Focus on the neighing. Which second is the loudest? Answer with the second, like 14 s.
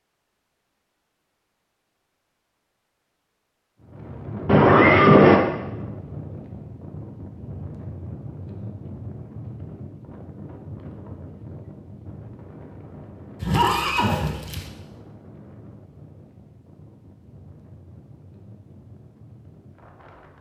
5 s.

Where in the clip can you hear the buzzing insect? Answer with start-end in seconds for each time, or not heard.
not heard.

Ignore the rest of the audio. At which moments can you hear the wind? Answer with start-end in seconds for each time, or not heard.
3.8-20.3.